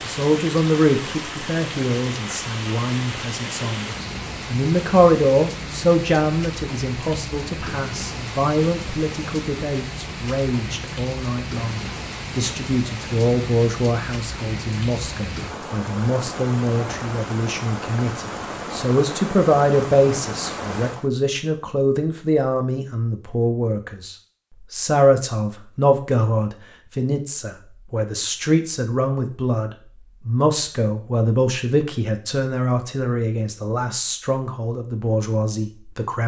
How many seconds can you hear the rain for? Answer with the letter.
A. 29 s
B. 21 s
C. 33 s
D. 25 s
B.